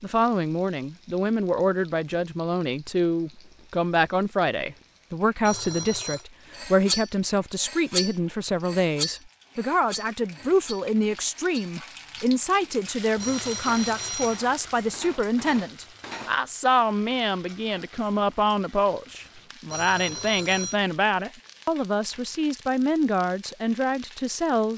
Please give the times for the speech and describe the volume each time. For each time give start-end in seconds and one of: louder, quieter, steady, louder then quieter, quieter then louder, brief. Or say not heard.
0.0-24.7 steady.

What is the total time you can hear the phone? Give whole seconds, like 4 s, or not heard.
3 s.